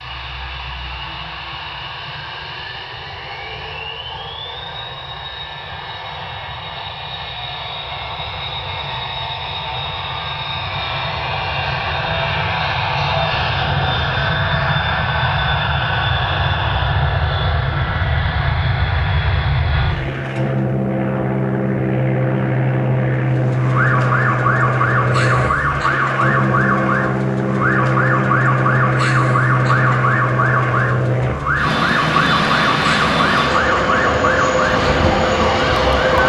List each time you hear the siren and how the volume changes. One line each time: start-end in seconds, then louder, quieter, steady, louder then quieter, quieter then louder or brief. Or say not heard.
23.4-36.2 steady.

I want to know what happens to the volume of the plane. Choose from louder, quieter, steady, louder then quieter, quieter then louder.
louder.